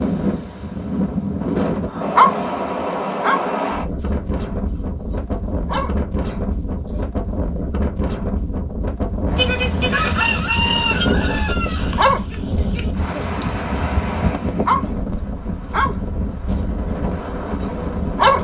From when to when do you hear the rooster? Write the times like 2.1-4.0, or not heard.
9.3-12.9.